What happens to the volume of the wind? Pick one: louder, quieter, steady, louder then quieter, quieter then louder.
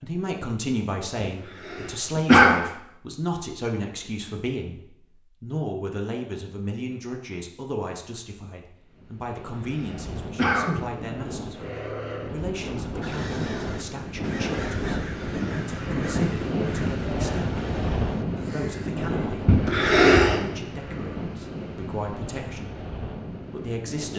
louder then quieter.